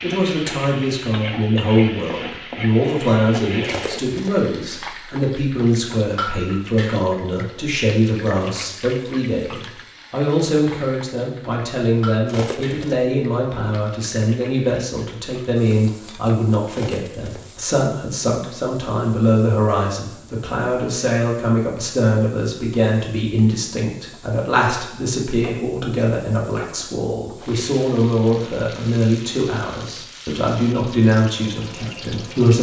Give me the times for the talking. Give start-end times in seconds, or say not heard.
0.0-32.5.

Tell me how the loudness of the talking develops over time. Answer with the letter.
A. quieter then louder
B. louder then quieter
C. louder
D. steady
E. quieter
D.